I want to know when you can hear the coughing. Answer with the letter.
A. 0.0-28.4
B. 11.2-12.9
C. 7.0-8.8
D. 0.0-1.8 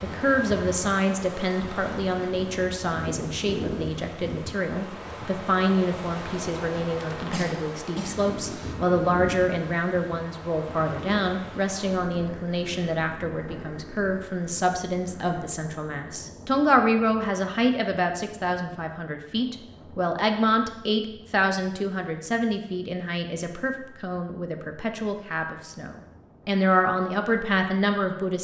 C.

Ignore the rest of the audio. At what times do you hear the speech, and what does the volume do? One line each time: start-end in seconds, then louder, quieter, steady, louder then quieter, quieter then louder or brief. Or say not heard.
0.0-28.4 steady.